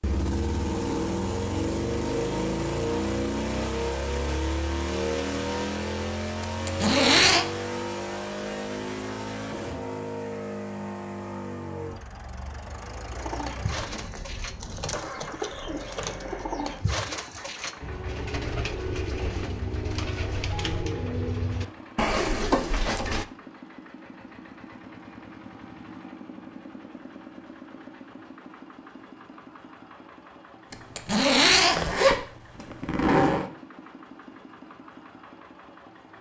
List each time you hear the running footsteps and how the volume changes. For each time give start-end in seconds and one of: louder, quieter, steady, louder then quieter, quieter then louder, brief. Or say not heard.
not heard.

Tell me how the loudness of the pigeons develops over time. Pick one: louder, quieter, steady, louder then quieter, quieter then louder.
louder.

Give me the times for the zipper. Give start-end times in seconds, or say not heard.
6.7-7.5, 30.7-33.5.